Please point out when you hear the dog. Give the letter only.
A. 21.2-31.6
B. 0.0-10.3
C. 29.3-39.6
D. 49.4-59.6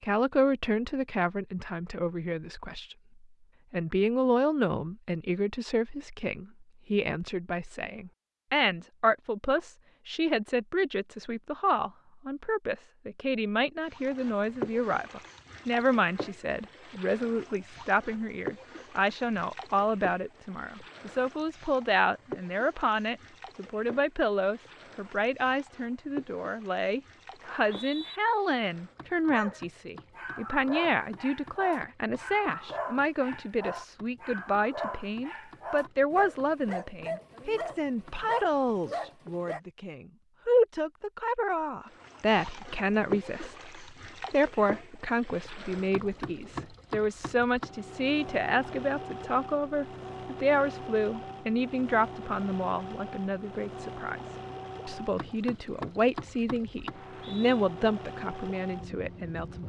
C.